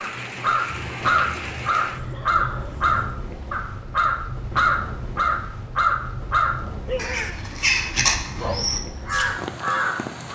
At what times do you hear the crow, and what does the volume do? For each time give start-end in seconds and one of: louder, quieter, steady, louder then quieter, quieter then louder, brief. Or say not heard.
0.0-10.2 steady.